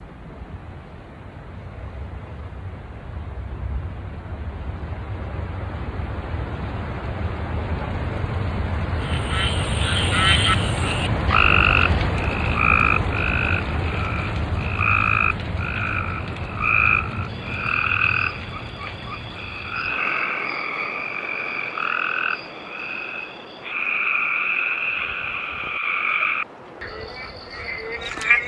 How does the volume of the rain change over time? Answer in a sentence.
The volume of the rain goes up, then down.